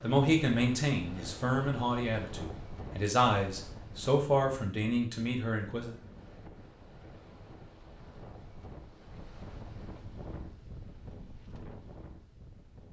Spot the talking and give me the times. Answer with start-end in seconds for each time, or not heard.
0.0-6.0.